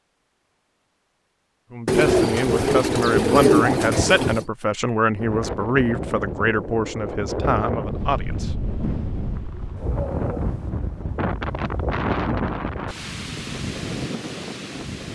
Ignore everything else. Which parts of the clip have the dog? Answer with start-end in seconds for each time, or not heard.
9.8-10.7.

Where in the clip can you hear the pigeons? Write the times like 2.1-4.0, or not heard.
1.9-4.5.